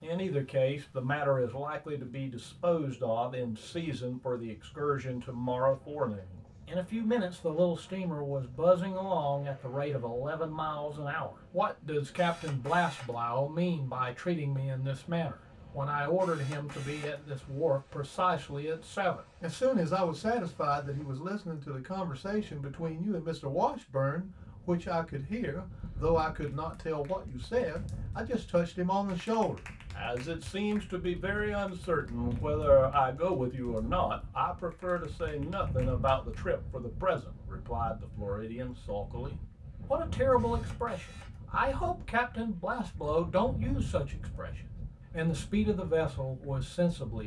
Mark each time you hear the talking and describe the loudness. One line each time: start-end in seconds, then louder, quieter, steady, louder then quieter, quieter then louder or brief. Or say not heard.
0.0-47.2 steady.